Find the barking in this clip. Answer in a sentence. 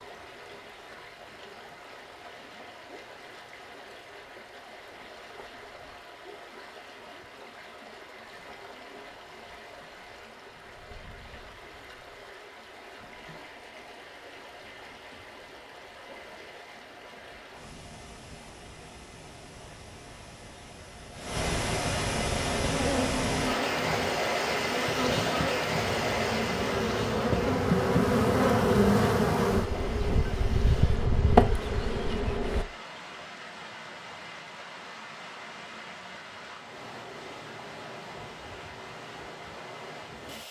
You can't hear the barking here.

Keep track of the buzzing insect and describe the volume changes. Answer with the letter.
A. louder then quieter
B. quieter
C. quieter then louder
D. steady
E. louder
E.